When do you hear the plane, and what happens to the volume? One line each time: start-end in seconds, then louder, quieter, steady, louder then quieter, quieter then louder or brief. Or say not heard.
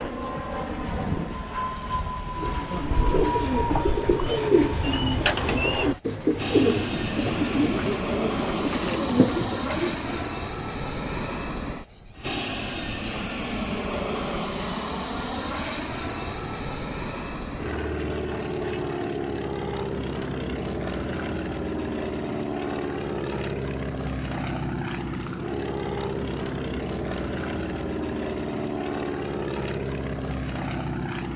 0.0-31.3 steady.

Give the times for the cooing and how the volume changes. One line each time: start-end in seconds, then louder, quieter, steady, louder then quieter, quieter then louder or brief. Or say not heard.
2.4-10.3 steady.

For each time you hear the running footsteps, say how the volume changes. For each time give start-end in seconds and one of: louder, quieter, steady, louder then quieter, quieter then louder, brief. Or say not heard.
not heard.